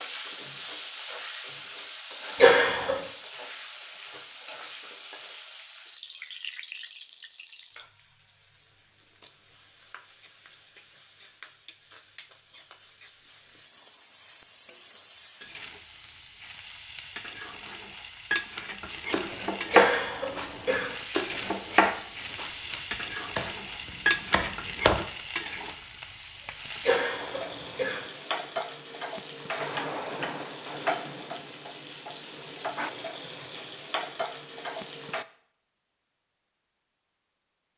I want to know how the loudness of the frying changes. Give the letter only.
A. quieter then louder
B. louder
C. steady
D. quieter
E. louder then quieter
A.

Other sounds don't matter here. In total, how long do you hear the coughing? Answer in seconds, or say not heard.
3 s.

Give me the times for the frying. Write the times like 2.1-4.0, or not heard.
0.0-35.2.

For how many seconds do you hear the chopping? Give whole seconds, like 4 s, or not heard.
6 s.